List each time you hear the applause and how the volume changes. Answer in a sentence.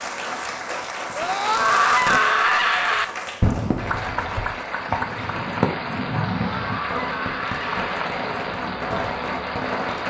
The applause can be heard from 0.0 to 10.0 s, at a steady volume.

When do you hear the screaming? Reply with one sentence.
You can hear the screaming from 1.1 to 3.0 s and from 6.3 to 7.8 s.